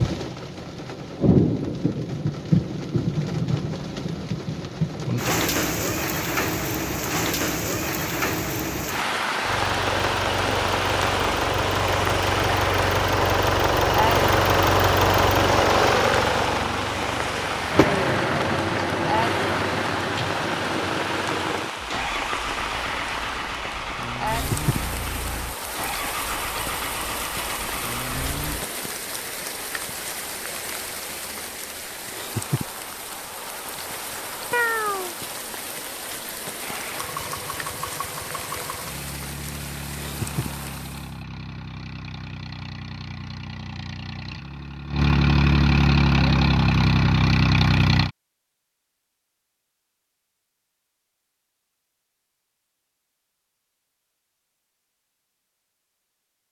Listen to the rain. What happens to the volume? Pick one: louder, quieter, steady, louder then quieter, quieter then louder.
quieter.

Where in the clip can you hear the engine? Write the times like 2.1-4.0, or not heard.
9.4-28.6, 36.6-48.1.